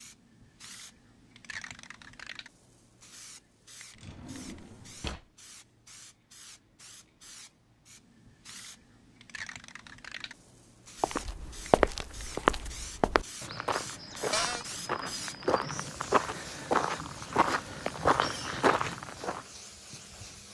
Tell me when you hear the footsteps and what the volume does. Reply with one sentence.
The footsteps can be heard from 11.0 to 19.4 s, getting quieter then louder.